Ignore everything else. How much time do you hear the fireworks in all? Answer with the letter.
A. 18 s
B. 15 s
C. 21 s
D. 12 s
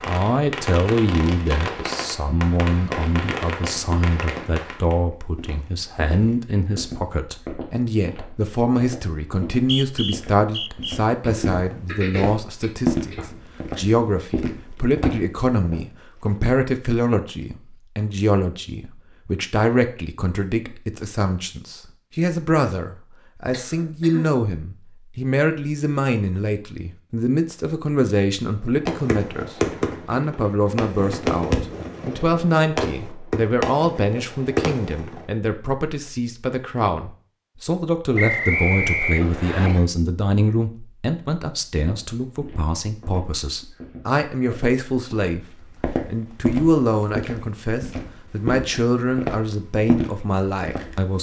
D.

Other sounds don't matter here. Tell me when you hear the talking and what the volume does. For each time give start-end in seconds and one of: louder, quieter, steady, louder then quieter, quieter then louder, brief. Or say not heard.
0.0-51.1 steady.